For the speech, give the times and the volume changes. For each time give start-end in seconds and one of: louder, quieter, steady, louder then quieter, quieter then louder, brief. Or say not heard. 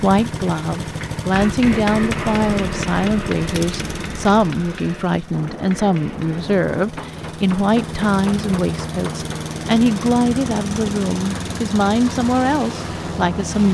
0.0-13.6 steady.